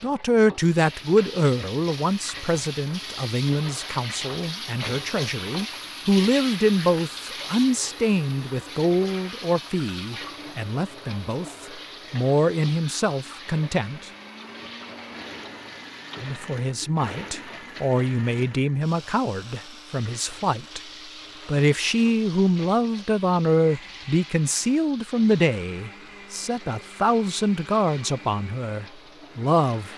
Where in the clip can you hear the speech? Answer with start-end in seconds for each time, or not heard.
0.0-14.1, 16.2-20.8, 21.4-29.9.